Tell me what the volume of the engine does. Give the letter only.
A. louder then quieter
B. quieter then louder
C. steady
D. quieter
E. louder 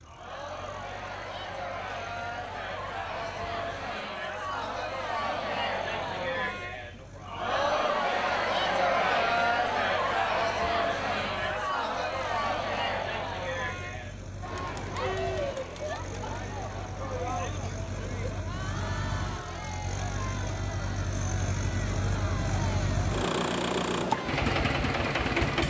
E.